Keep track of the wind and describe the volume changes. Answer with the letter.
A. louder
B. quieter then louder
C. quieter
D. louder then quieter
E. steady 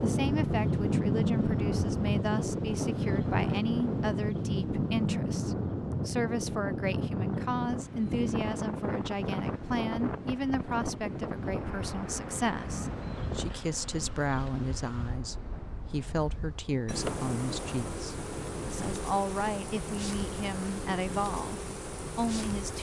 C.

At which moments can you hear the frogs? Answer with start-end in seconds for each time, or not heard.
not heard.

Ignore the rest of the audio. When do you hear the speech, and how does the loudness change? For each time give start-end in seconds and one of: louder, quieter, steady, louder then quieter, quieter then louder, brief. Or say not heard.
0.0-22.7 steady.